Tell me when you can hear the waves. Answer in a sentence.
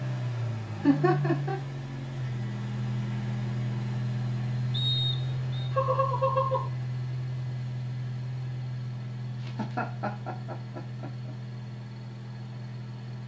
The waves can't be heard in this clip.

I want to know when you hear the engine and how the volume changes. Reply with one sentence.
You can hear the engine from 0.0 to 13.2 s, getting quieter.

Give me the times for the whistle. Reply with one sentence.
The whistle can be heard from 4.7 to 5.7 s.